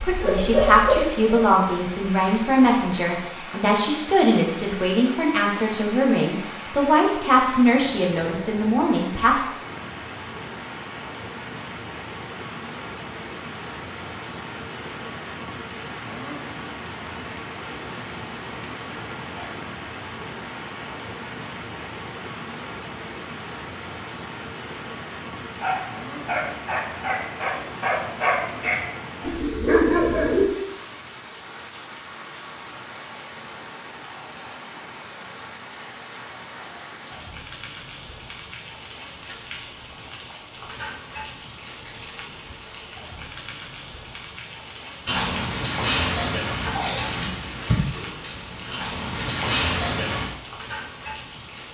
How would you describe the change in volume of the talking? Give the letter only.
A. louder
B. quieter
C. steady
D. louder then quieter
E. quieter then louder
C.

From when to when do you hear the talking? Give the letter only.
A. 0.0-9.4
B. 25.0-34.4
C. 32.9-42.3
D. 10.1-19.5
A.